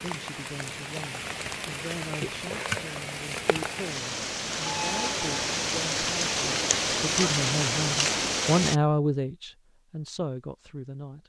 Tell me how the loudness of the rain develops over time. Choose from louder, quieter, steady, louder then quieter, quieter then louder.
louder.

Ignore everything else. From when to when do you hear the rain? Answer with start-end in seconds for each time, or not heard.
0.0-8.8.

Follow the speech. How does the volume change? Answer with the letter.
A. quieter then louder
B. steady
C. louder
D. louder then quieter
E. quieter
D.